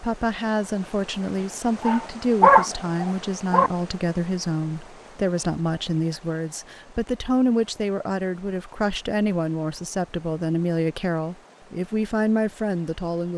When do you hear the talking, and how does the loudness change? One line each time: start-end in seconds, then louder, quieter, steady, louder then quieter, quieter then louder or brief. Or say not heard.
0.0-13.3 steady.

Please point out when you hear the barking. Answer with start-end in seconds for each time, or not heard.
1.8-3.7.